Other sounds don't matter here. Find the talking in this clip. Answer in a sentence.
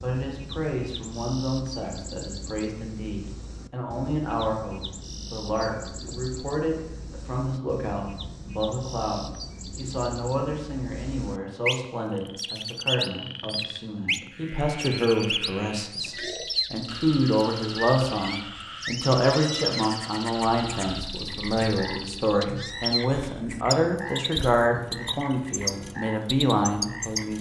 You can hear the talking from 0.0 to 27.3 s.